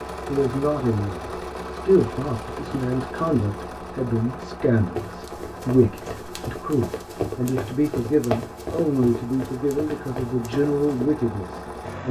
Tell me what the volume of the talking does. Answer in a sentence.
The loudness of the talking stays about the same.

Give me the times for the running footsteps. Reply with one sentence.
You can hear the running footsteps from 5.0 to 11.1 s.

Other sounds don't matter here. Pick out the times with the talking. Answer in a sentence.
The talking can be heard from 0.2 to 12.0 s.